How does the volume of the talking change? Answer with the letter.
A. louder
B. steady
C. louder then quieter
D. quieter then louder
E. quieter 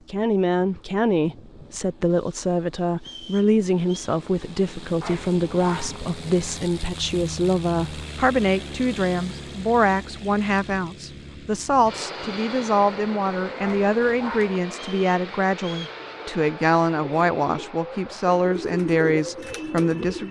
B.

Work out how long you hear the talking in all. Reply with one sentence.
The talking can be heard for 20 seconds in total.